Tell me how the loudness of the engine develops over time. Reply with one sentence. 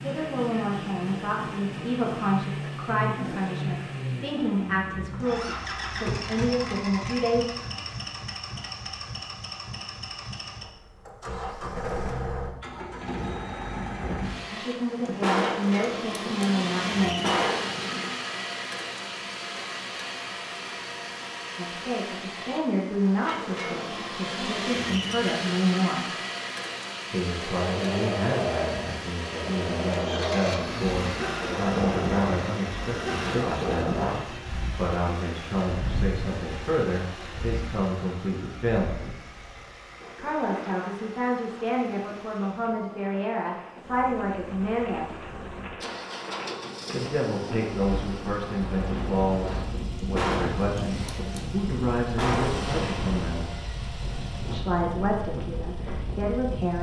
The loudness of the engine goes down.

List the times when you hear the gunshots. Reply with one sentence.
The gunshots can be heard from 14.9 to 18.1 s and from 49.9 to 52.6 s.